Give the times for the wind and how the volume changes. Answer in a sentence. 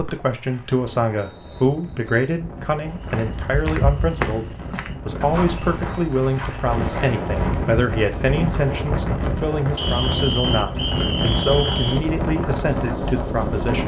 You can hear the wind from 0.0 to 13.8 s, getting louder.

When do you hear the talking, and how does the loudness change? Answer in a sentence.
You can hear the talking from 0.0 to 13.8 s, at a steady volume.